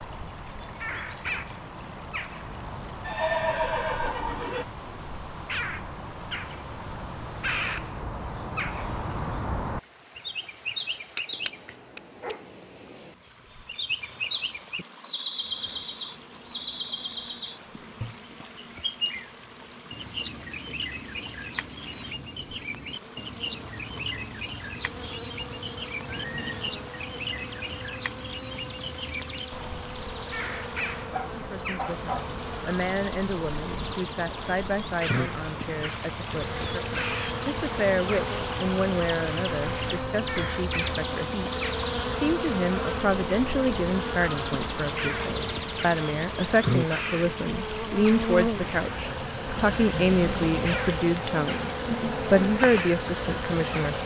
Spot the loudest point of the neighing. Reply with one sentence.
The volume of the neighing peaks at 3 seconds.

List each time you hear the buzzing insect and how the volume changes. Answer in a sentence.
The buzzing insect can be heard from 15.3 to 54.0 s, getting louder.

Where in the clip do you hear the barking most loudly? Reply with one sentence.
The volume of the barking peaks at 32 seconds.